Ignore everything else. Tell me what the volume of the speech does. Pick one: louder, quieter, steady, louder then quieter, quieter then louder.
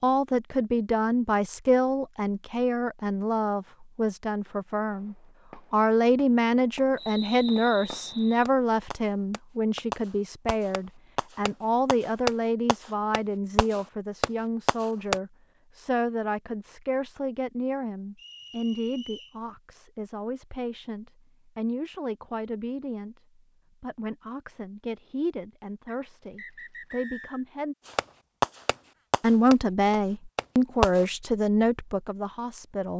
quieter then louder.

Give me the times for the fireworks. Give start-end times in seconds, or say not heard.
4.9-15.2, 27.9-31.1.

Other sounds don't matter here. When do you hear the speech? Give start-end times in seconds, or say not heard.
0.0-27.8, 29.2-32.9.